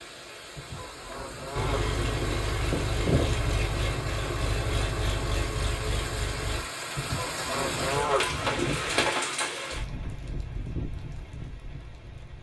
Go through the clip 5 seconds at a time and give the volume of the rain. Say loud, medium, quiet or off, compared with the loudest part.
medium, loud, medium.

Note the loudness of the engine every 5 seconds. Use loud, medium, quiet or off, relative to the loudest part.
loud, loud, off.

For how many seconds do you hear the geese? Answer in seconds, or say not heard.
5 s.